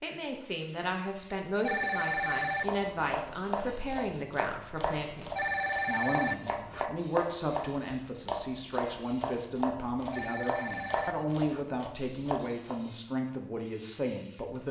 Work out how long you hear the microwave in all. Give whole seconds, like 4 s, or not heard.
not heard.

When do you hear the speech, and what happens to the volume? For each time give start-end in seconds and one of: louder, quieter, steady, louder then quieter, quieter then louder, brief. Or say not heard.
0.0-14.6 steady.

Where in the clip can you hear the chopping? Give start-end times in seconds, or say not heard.
2.6-12.8.